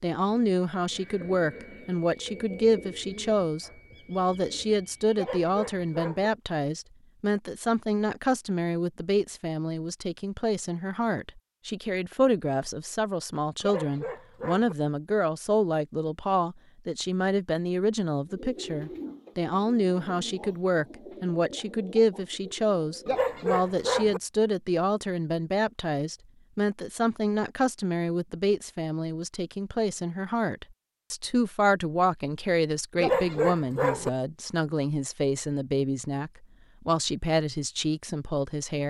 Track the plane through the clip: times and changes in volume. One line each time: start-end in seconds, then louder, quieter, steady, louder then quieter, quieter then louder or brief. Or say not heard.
not heard.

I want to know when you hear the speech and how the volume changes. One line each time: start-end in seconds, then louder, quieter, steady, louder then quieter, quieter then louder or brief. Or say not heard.
0.0-38.8 steady.